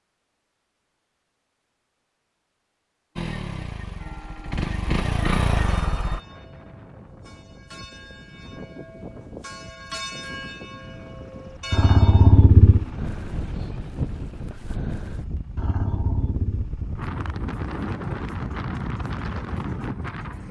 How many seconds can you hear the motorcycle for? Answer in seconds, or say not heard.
10 s.